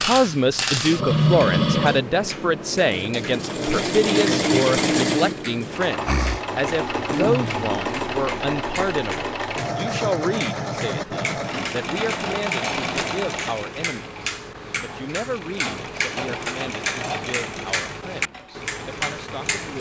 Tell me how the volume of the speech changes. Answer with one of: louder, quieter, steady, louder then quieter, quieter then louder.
quieter.